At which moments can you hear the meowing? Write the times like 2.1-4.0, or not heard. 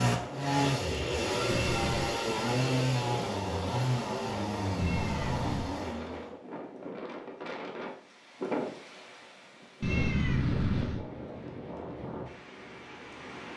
1.5-2.1, 4.8-5.7, 9.8-11.1.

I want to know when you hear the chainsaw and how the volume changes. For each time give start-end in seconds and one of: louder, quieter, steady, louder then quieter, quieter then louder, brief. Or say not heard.
0.0-6.3 quieter.